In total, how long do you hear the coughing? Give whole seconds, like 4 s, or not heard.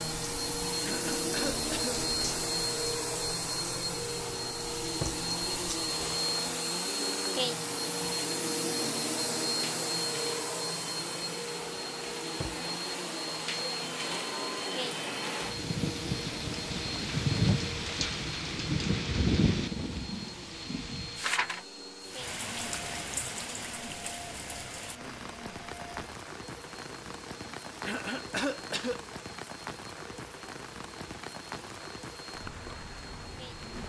2 s.